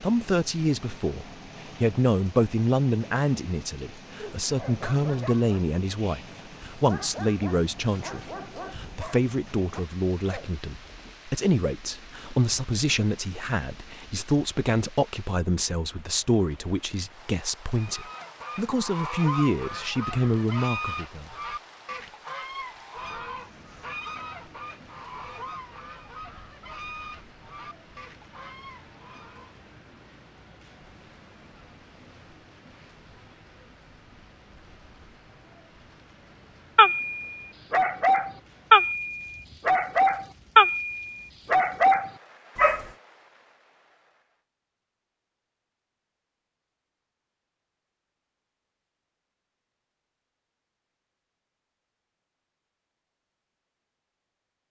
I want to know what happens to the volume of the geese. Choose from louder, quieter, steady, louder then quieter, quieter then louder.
quieter.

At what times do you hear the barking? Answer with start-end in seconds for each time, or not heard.
4.2-10.5, 36.8-42.9.